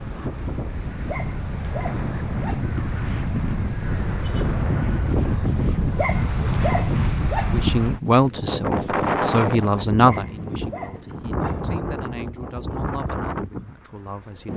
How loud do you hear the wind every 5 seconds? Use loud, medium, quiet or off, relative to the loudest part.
loud, loud, medium.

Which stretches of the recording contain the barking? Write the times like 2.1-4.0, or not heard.
0.8-2.9, 5.8-7.7, 9.9-11.8.